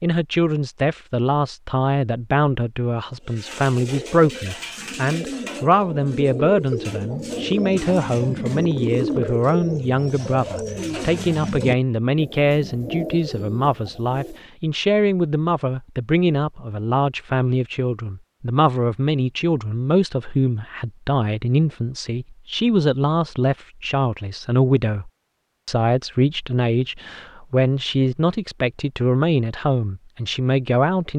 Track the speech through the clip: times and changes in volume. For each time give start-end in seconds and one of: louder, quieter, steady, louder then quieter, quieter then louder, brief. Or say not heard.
0.0-31.1 steady.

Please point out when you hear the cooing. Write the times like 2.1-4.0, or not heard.
3.2-14.4.